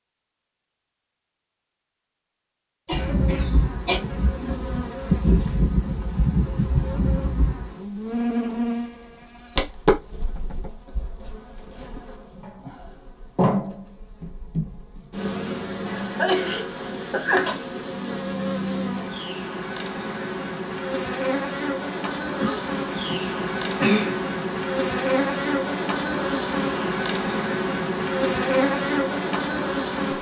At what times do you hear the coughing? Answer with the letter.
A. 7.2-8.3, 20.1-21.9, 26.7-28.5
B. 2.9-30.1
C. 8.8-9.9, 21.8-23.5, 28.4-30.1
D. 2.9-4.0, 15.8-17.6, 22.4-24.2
D.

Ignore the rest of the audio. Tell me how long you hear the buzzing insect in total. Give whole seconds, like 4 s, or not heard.
27 s.